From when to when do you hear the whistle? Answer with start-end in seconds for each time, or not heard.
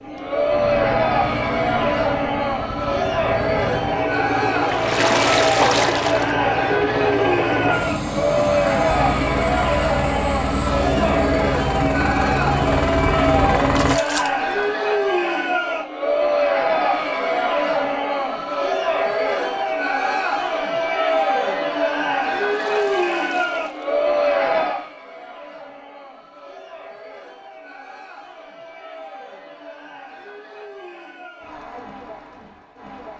not heard.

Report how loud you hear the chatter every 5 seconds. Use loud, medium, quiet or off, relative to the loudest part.
loud, loud, loud, loud, loud, quiet, quiet.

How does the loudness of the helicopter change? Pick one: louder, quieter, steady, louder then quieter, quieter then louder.
louder.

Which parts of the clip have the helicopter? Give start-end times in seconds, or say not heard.
0.0-13.9.